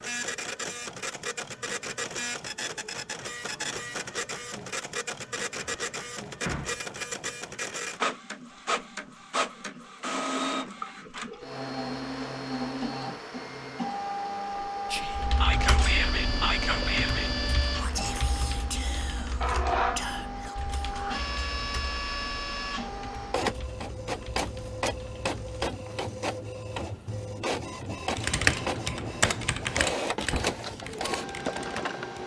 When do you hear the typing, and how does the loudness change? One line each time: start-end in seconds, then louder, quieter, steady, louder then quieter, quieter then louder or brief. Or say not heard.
15.2-25.7 quieter
28.1-32.2 louder then quieter.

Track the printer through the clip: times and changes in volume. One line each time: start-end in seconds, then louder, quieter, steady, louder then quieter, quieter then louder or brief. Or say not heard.
0.0-32.2 steady.